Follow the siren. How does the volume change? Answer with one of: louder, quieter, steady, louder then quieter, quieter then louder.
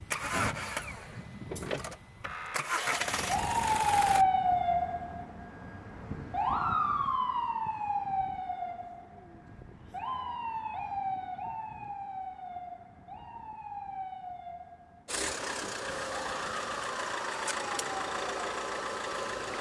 quieter.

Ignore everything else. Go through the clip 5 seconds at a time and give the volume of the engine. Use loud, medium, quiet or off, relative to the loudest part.
loud, off, off, loud.